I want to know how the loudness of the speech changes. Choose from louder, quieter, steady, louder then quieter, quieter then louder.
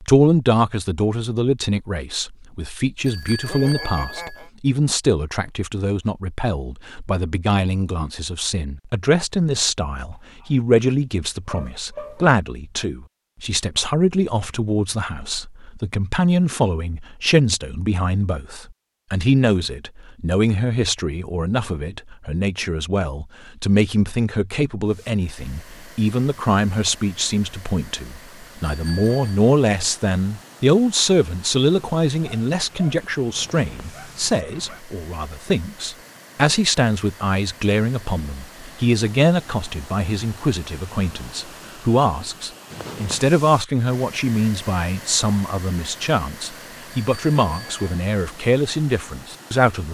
steady.